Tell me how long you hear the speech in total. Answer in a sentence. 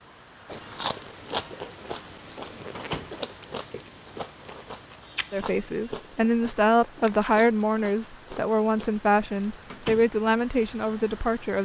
The speech can be heard for 6 seconds in total.